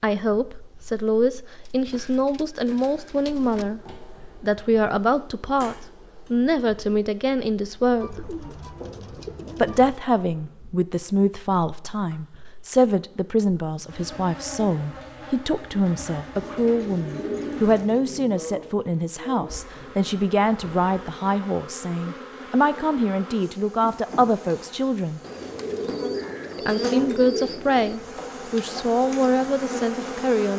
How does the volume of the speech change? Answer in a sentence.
The volume of the speech stays about the same.